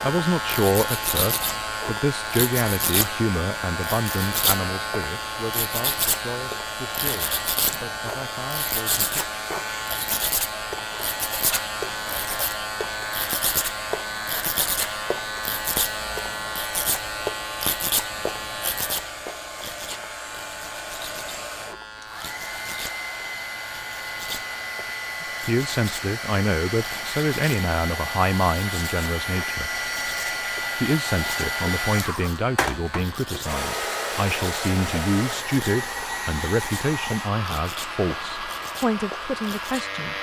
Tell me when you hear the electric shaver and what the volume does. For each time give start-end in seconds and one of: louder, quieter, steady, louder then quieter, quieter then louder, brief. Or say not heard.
0.0-40.1 quieter.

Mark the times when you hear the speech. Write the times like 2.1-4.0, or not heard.
0.0-9.2, 25.4-29.7, 30.8-40.1.